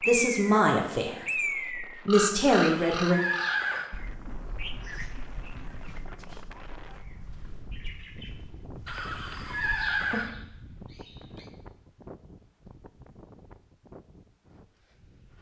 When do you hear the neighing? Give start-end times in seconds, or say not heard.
2.5-3.9, 8.8-10.3.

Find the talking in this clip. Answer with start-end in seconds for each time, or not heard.
0.1-3.2.